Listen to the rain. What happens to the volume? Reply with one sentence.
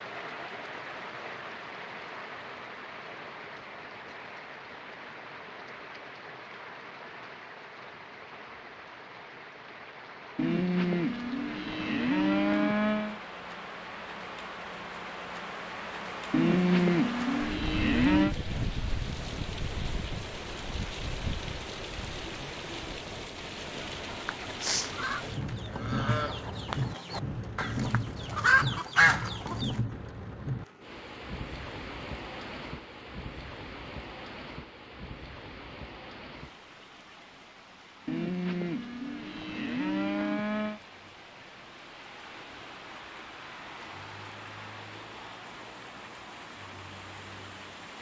The loudness of the rain goes up, then down.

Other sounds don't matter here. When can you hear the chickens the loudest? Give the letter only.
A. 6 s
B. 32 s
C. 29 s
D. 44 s
C.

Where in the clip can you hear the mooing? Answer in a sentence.
The mooing can be heard from 10.3 to 13.2 s, from 16.3 to 18.4 s and from 38.0 to 40.8 s.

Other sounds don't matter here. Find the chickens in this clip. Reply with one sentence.
You can hear the chickens from 23.9 to 29.8 s.